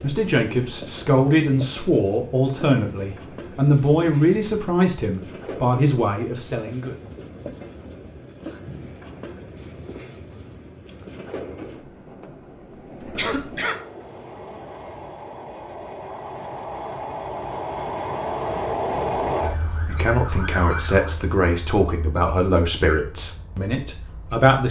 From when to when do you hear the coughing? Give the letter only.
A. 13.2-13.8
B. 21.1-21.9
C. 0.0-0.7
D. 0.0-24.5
A.